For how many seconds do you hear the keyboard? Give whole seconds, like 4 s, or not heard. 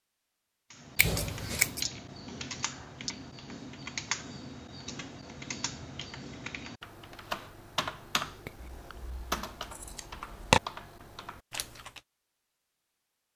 11 s.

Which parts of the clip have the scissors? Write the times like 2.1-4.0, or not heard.
0.9-1.9, 8.6-10.6.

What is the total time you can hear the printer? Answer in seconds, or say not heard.
not heard.